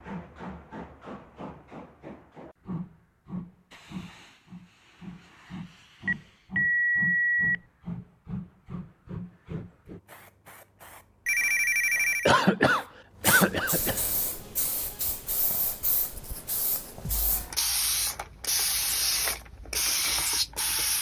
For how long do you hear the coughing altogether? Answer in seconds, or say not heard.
2 s.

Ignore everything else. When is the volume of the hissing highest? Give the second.
20 s.